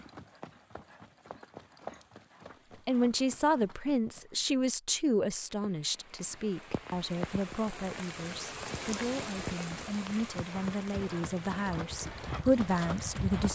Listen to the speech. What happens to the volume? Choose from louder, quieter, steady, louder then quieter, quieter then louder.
quieter then louder.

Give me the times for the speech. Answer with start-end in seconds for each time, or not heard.
2.9-13.4.